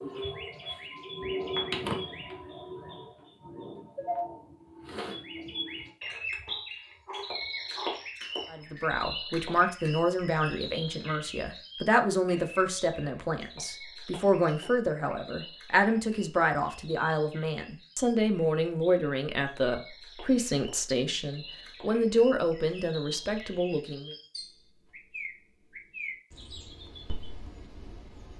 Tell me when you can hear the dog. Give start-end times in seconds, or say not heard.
6.5-8.1.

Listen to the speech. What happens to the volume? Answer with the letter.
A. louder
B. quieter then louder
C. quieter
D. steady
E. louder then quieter
D.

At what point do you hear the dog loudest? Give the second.
8 s.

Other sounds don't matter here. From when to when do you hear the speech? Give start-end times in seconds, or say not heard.
8.5-24.1.